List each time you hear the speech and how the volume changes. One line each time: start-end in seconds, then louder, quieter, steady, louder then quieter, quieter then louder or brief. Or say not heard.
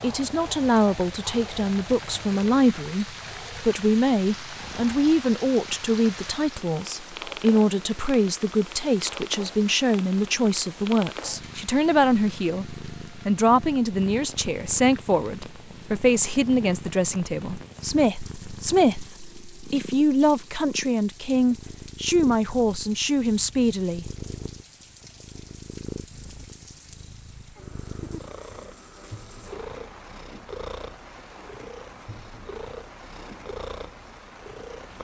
0.0-24.1 steady.